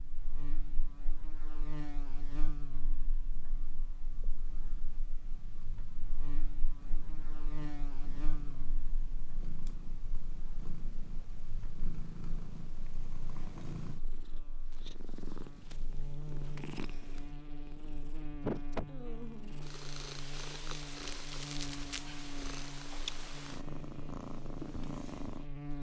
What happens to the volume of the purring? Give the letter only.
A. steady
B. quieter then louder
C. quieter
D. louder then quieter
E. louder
E.